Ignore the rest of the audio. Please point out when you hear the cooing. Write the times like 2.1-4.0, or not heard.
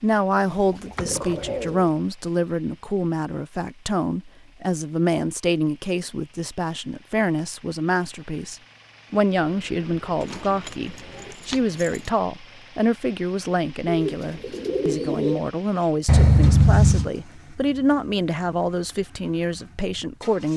0.3-1.9, 9.4-11.3, 13.8-15.4.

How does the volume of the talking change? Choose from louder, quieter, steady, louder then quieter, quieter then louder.
steady.